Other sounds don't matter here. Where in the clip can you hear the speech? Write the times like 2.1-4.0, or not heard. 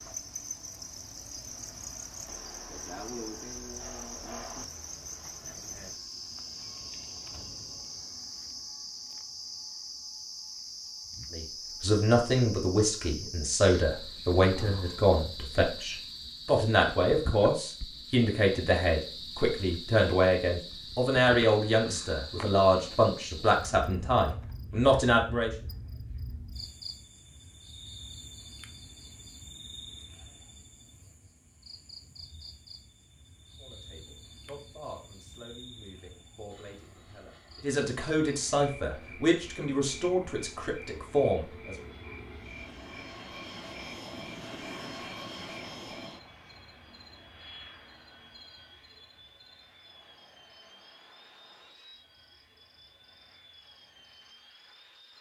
11.3-25.5, 33.5-41.8.